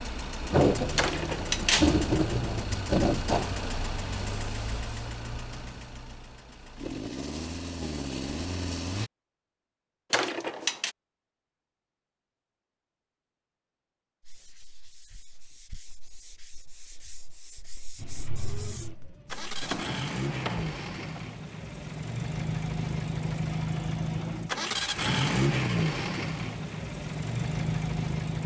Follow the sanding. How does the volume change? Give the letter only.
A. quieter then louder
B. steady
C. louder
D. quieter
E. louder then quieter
C.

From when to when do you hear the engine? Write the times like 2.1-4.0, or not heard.
0.0-9.1, 17.9-28.4.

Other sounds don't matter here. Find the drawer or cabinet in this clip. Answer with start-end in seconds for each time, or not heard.
0.9-1.9, 10.1-10.9, 19.6-21.2.